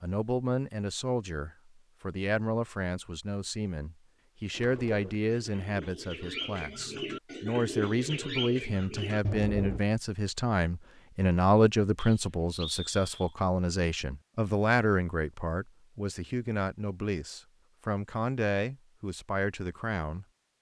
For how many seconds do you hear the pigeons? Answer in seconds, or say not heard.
5 s.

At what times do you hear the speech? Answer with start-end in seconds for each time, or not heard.
0.0-20.2.